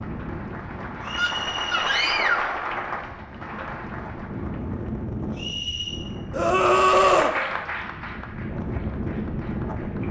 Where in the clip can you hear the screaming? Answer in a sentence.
You can hear the screaming from 1.1 to 2.5 s and from 6.3 to 7.3 s.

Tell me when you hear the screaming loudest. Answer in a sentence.
The loudest moment of the screaming is at 7 seconds.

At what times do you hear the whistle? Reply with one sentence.
You can hear the whistle from 1.0 to 2.2 s and from 5.3 to 6.0 s.